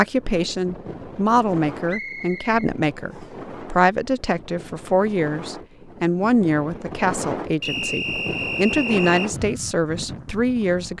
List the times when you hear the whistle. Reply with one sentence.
You can hear the whistle from 1.9 to 3.3 s and from 7.6 to 9.3 s.